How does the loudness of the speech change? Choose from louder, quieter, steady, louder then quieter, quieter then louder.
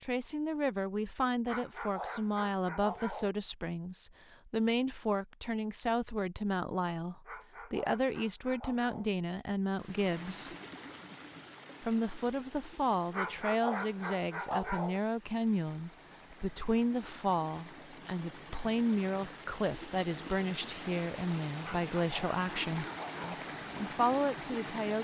steady.